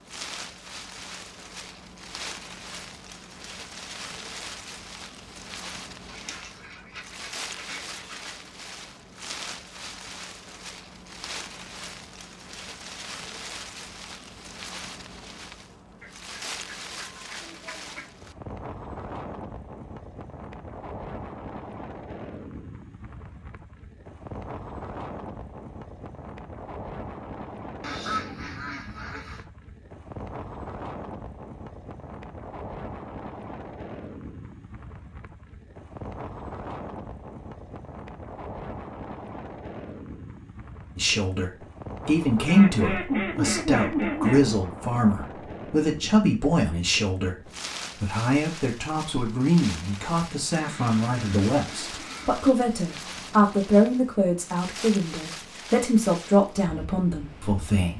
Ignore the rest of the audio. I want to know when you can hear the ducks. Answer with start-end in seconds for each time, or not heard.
6.0-8.3, 16.0-18.1, 27.8-29.4, 42.5-44.5, 50.5-52.5.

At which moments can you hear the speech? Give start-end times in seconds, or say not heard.
41.0-57.9.